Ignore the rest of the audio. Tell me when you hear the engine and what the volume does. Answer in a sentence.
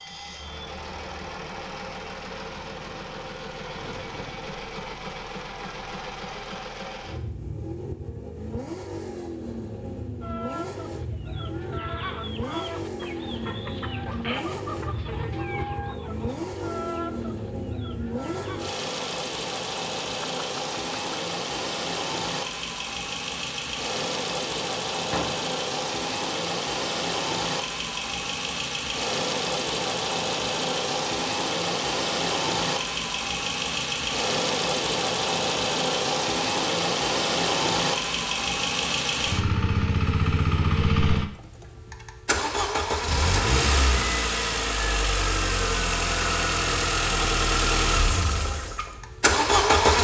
You can hear the engine from 0.0 to 49.9 s, getting louder.